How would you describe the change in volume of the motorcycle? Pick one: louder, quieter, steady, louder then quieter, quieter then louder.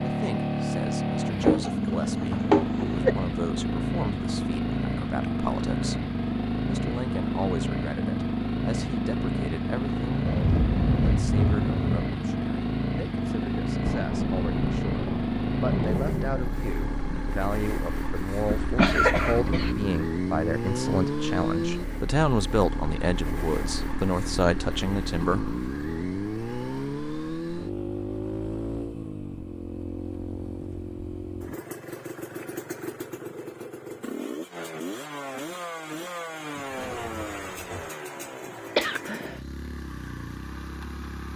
quieter.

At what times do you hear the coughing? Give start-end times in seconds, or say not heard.
1.4-3.1, 18.4-19.8, 38.8-39.4.